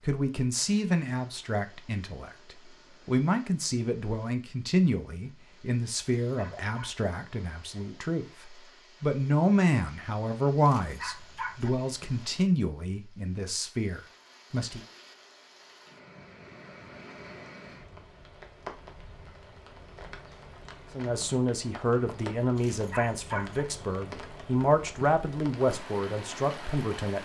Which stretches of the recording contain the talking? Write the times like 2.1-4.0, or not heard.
0.1-14.8, 20.9-27.1.